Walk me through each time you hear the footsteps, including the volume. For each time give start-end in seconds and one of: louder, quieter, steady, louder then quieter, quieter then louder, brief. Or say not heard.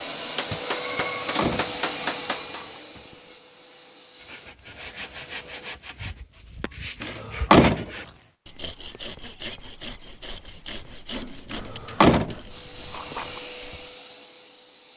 not heard.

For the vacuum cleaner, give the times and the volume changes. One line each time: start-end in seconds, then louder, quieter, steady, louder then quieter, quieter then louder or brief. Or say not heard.
0.0-5.8 quieter
12.4-14.9 brief.